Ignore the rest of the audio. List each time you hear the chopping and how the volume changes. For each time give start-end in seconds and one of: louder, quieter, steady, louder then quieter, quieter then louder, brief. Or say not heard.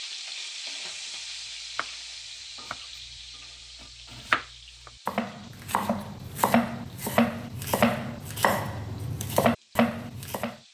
1.3-10.6 louder.